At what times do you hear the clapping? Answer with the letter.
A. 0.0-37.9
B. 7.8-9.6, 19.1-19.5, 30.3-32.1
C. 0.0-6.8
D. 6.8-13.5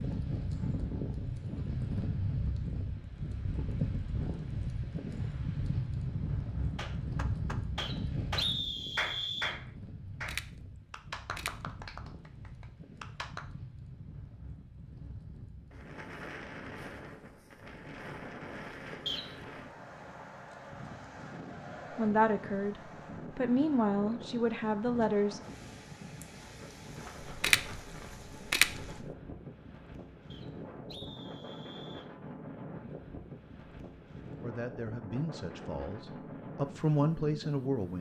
D.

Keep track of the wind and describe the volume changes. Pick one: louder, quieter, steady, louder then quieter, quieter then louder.
quieter.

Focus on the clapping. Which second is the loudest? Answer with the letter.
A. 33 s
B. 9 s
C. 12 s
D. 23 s
B.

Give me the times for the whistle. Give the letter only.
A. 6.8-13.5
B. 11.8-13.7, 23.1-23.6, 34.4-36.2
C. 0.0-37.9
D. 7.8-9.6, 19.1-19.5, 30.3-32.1
D.